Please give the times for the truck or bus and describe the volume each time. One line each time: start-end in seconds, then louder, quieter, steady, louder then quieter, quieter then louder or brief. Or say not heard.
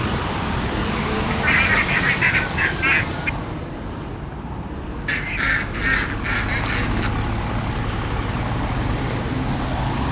0.0-10.0 quieter then louder.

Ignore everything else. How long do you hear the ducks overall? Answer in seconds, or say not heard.
4 s.